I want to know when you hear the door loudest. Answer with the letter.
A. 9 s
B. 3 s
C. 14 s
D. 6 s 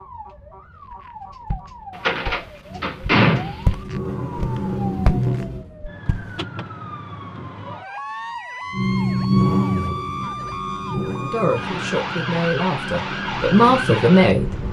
B.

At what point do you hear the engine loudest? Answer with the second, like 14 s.
9 s.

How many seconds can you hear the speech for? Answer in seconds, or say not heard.
3 s.